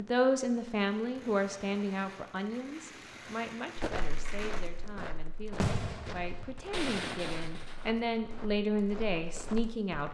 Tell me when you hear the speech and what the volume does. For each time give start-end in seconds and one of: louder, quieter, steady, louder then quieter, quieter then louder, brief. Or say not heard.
0.0-10.1 quieter then louder.